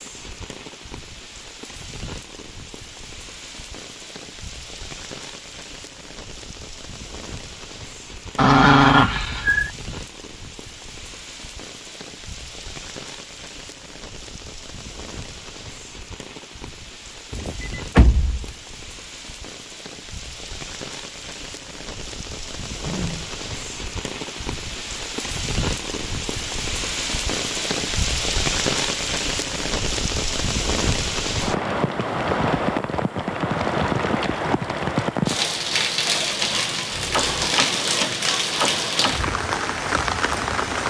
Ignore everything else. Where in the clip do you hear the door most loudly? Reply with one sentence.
The volume of the door peaks at 18 seconds.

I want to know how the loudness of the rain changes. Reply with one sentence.
The loudness of the rain goes up.